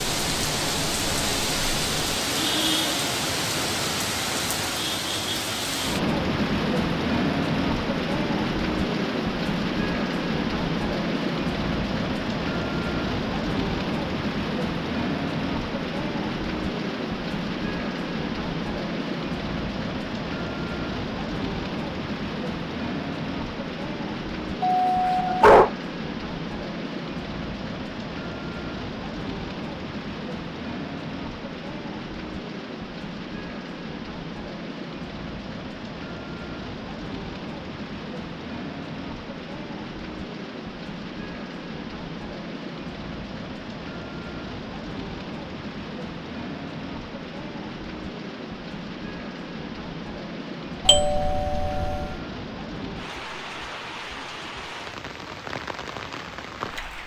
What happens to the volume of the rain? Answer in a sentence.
The loudness of the rain goes down.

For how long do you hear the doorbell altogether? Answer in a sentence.
You can hear the doorbell for 2 seconds altogether.